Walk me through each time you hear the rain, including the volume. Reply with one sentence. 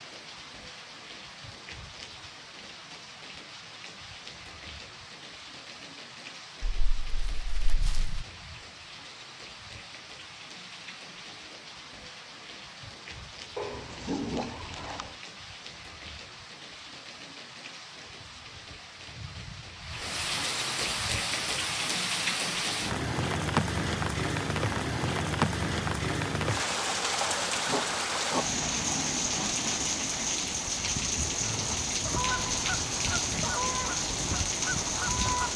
You can hear the rain from 0.0 to 35.5 s, getting louder.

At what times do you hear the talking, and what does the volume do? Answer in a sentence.
The talking can't be heard in this clip.